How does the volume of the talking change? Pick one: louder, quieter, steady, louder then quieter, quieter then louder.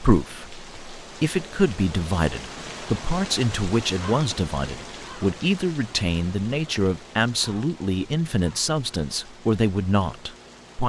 steady.